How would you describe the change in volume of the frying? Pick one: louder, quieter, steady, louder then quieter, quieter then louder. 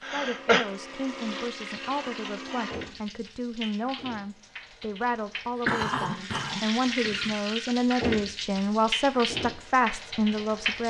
louder.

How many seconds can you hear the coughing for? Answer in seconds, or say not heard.
2 s.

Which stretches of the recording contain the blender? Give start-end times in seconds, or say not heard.
0.0-3.0.